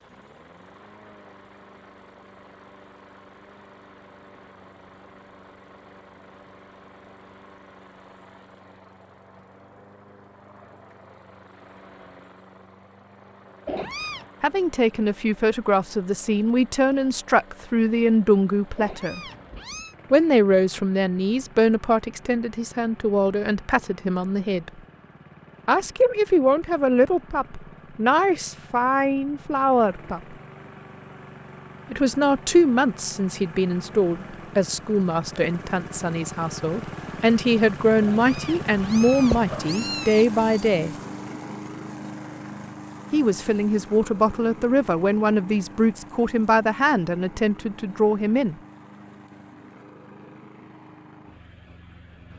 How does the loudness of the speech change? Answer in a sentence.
The loudness of the speech stays about the same.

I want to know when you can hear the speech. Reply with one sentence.
The speech can be heard from 14.4 to 19.2 s, from 20.1 to 24.7 s, from 25.6 to 30.4 s, from 31.9 to 41.0 s and from 43.1 to 48.5 s.